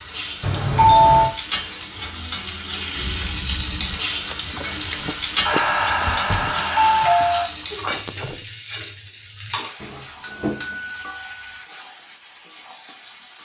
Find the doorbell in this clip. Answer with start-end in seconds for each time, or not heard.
0.4-1.3, 5.5-7.5, 9.8-11.6.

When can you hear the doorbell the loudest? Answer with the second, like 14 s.
1 s.